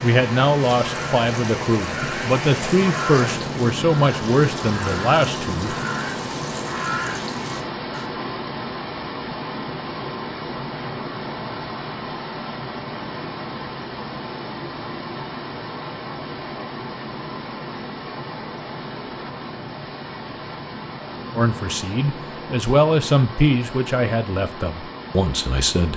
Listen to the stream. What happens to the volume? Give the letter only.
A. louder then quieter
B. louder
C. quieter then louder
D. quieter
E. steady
D.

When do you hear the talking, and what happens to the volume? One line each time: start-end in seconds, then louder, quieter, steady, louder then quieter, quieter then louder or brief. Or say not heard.
0.0-5.8 steady
21.4-25.9 louder then quieter.